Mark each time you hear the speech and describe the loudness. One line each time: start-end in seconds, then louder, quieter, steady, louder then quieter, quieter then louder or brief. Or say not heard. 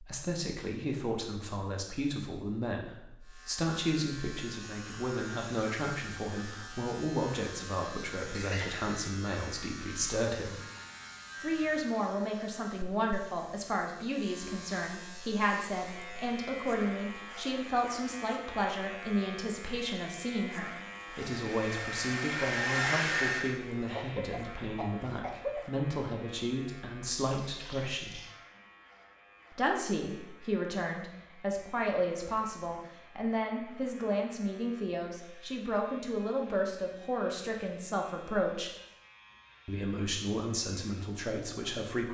0.0-10.6 steady
11.4-28.2 steady
29.5-38.7 steady
39.6-42.0 brief.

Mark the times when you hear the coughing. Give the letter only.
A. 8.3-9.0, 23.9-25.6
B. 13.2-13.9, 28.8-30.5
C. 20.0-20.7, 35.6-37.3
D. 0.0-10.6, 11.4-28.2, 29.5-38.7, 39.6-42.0
A.